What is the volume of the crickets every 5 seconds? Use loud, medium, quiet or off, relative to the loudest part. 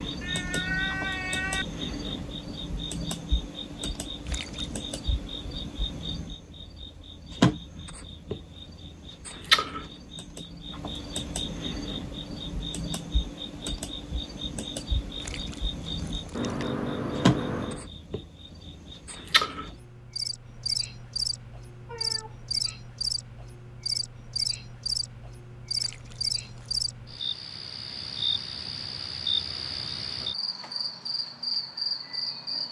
medium, loud, medium, loud, loud, loud, loud.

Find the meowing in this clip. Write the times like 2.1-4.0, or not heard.
0.2-1.6, 16.3-17.9, 21.9-22.6.